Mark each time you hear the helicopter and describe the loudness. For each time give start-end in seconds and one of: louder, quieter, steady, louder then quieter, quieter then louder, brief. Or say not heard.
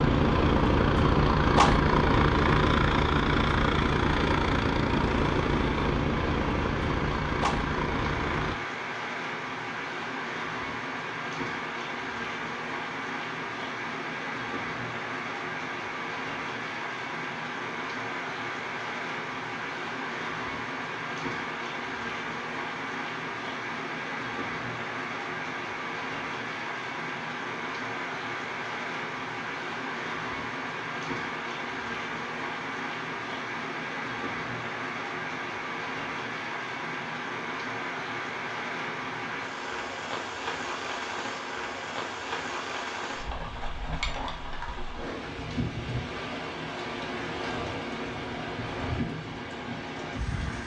0.0-8.6 quieter.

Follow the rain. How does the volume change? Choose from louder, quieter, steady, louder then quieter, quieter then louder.
steady.